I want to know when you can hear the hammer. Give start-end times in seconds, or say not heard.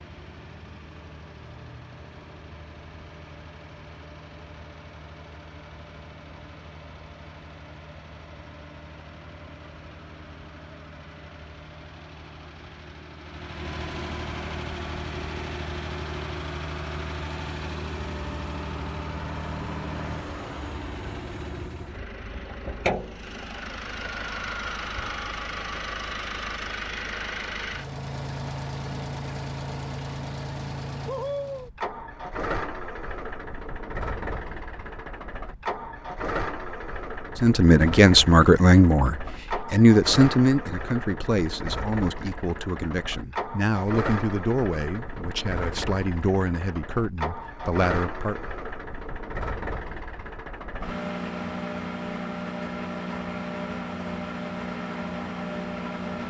not heard.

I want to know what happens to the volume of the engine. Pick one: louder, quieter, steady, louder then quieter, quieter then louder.
louder.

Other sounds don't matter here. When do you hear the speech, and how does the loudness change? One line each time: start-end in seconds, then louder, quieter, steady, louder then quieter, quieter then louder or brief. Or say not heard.
37.4-48.5 quieter.